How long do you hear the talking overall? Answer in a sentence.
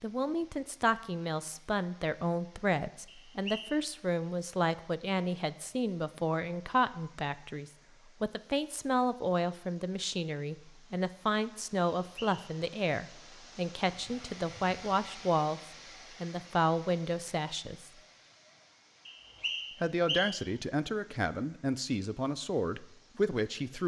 You can hear the talking for 21 seconds altogether.